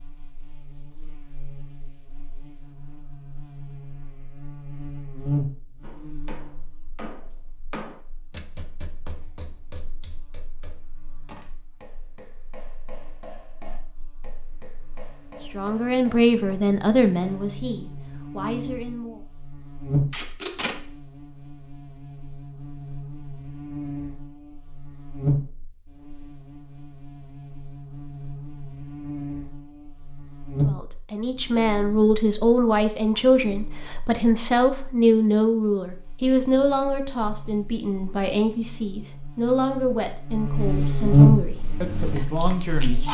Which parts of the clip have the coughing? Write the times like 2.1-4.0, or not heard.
not heard.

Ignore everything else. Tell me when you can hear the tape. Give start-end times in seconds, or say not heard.
20.1-20.8.